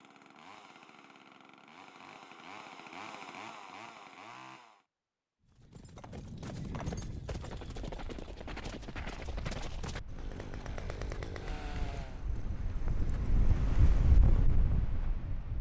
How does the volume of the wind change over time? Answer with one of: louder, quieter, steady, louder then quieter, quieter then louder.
quieter then louder.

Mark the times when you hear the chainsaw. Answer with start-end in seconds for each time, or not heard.
0.0-4.8, 10.1-12.2.